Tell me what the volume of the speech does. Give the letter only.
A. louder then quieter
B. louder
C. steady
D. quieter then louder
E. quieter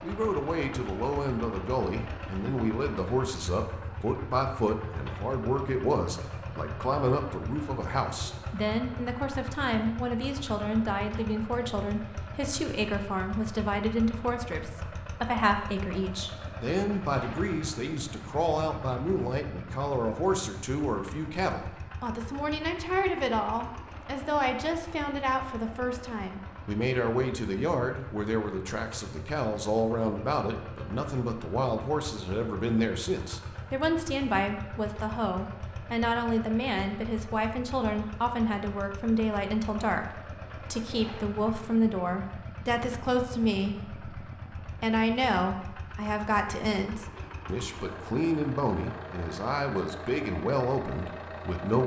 C.